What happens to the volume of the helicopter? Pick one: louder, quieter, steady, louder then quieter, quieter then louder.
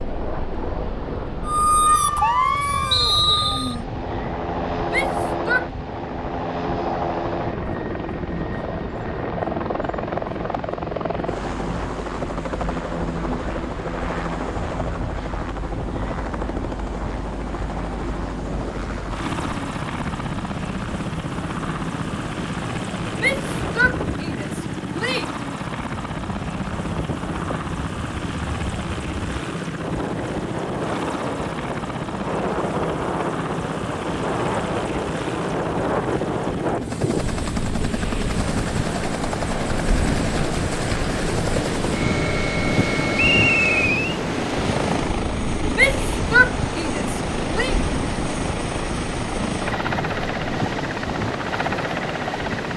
steady.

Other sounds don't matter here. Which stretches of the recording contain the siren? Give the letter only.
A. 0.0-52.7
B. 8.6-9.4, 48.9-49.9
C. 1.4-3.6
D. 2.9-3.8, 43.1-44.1
C.